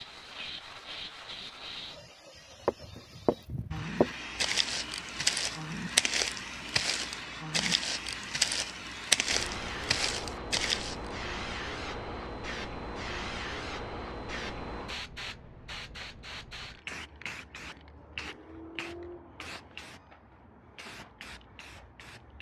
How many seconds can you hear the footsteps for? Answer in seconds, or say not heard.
8 s.